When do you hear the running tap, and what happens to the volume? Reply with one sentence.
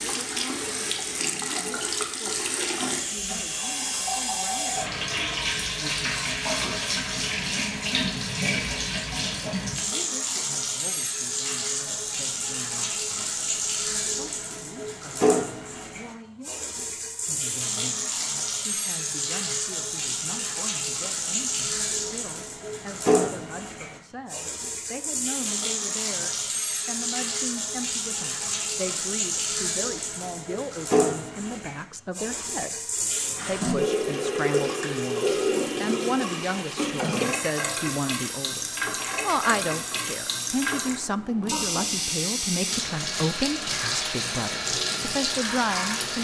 The running tap can be heard from 0.0 to 46.2 s, at a steady volume.